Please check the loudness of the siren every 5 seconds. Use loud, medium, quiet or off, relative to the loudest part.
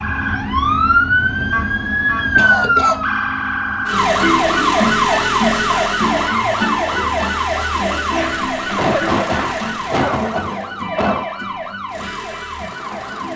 loud, loud, medium.